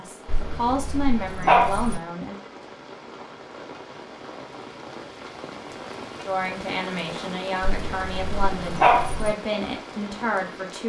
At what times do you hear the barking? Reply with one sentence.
You can hear the barking from 0.2 to 2.0 s and from 7.6 to 9.3 s.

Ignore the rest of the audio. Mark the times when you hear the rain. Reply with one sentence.
You can hear the rain from 0.0 to 10.8 s.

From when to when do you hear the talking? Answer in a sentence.
The talking can be heard from 0.0 to 2.4 s and from 6.2 to 10.8 s.